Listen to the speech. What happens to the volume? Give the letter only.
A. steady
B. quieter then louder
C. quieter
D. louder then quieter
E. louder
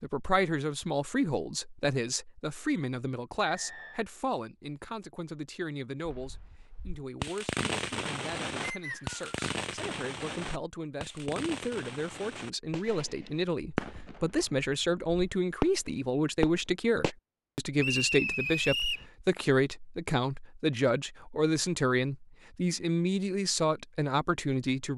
B.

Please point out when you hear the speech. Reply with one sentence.
You can hear the speech from 0.0 to 24.9 s.